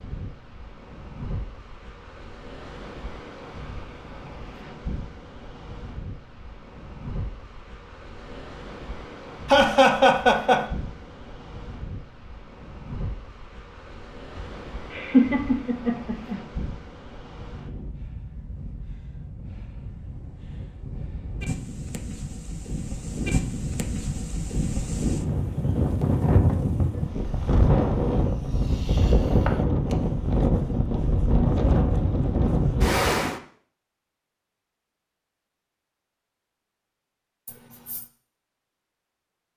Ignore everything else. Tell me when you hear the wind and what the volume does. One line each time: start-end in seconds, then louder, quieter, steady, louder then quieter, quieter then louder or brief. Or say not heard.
0.0-33.4 louder.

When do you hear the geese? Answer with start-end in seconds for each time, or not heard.
not heard.